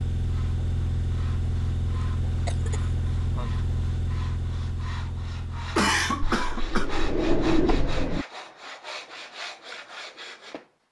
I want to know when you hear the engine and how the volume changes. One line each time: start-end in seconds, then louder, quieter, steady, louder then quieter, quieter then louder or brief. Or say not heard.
0.0-6.3 quieter.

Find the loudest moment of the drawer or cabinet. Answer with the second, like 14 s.
7 s.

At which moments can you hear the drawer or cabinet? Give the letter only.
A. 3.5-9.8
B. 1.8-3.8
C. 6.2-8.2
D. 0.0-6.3
C.